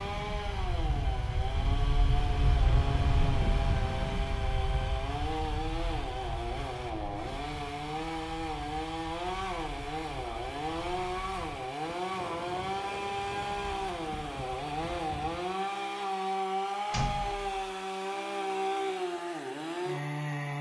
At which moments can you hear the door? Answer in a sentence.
The door can be heard from 16.9 to 17.6 s.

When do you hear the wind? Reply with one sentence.
The wind can be heard from 0.0 to 15.4 s.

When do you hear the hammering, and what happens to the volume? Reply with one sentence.
The hammering can't be heard in this clip.